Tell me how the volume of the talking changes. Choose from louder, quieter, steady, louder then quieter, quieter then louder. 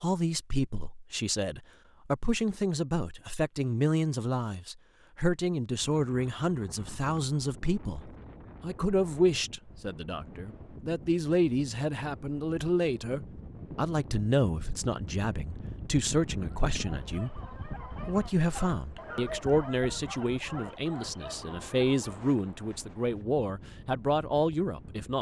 steady.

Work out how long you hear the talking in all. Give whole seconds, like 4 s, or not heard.
25 s.